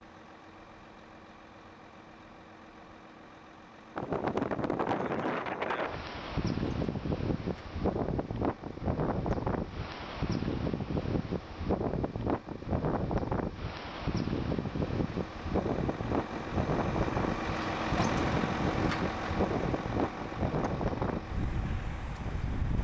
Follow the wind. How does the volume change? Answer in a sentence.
The loudness of the wind stays about the same.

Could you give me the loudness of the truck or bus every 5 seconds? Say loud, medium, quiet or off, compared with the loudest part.
quiet, quiet, quiet, loud, medium.